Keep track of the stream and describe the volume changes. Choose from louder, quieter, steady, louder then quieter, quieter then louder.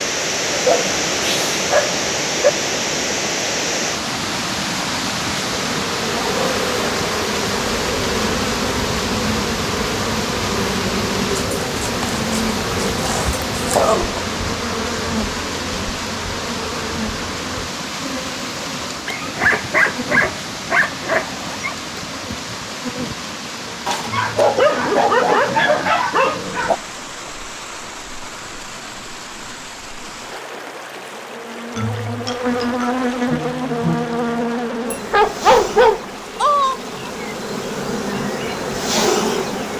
quieter.